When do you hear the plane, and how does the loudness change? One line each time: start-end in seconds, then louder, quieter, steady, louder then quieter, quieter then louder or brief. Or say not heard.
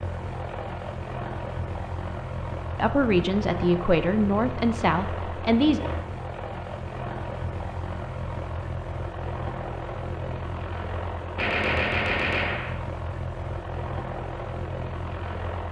0.0-15.6 steady.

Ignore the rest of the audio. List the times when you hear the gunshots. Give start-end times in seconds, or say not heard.
11.3-12.8.